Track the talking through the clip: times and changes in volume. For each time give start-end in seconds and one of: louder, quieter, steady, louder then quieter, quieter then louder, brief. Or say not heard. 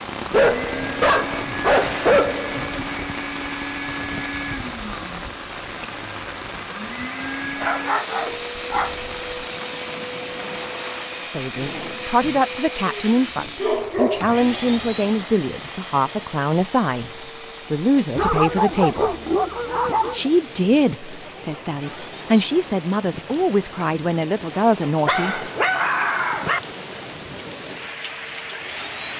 11.2-17.1 steady
17.7-19.1 brief
20.1-25.4 quieter then louder.